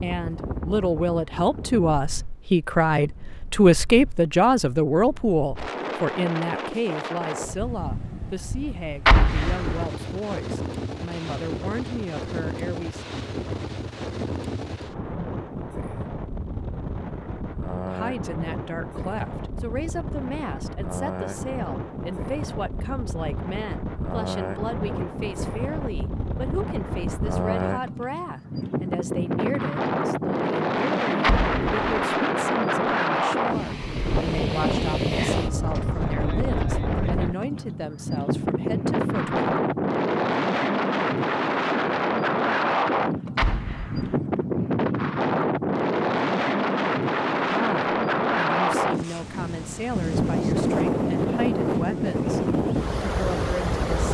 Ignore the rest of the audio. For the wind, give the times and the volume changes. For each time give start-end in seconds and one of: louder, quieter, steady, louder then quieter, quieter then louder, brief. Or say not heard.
0.0-54.0 louder.